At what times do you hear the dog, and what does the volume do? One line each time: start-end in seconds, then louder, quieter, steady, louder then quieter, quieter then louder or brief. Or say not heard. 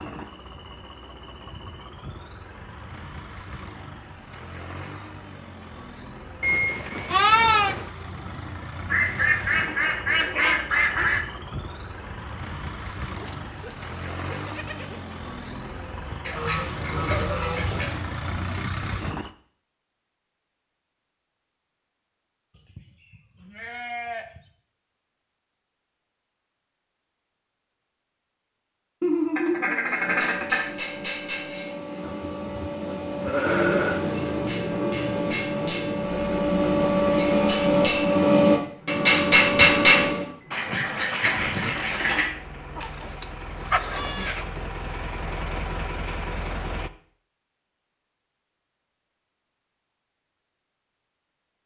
not heard.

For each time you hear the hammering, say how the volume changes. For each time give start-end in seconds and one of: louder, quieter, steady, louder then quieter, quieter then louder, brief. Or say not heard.
29.9-40.3 louder.